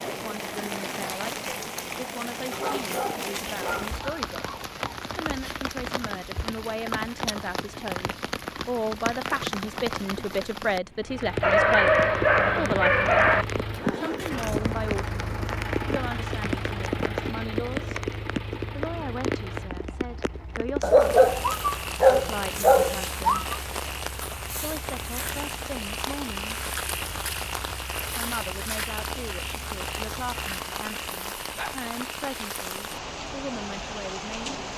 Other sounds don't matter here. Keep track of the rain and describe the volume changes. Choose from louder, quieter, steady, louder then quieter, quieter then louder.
steady.